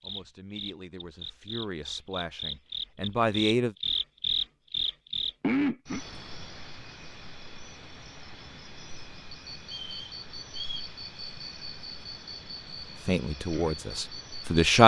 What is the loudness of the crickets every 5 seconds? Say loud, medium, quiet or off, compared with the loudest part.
loud, loud, medium.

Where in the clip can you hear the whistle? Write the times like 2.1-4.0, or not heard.
9.6-10.9.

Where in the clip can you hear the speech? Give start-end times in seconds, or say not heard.
0.0-3.8, 13.1-14.8.